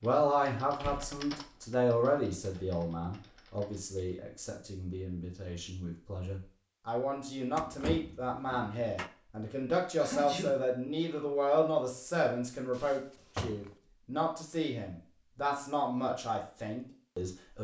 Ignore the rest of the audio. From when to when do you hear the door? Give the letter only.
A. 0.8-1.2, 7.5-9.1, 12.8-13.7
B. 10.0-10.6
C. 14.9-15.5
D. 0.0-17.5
A.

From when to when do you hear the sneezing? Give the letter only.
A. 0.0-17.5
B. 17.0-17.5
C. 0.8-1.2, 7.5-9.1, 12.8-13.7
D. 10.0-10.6
D.